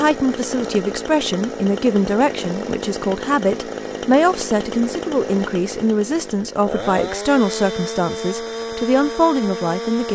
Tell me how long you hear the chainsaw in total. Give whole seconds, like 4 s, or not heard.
10 s.